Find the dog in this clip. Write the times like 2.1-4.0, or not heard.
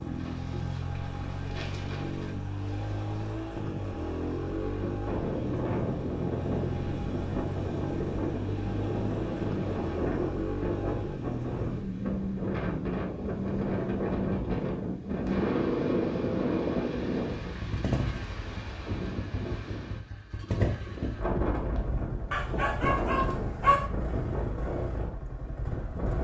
22.3-23.9.